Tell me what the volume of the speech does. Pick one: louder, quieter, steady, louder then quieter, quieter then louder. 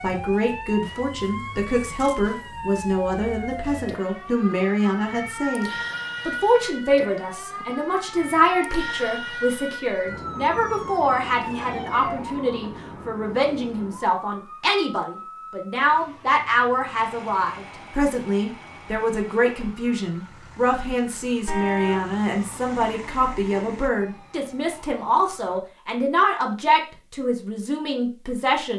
steady.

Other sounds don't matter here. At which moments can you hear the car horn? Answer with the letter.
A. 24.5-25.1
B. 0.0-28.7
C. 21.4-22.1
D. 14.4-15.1
C.